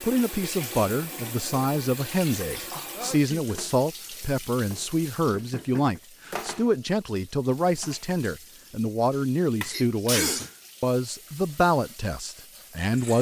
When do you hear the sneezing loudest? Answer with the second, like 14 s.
10 s.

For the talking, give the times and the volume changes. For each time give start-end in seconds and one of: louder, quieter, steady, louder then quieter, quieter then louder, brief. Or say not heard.
0.0-13.1 steady.